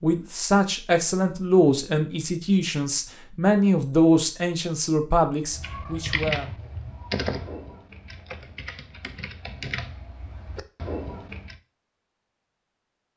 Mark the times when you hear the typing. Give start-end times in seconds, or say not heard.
5.5-11.6.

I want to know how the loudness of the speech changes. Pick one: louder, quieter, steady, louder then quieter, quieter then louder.
steady.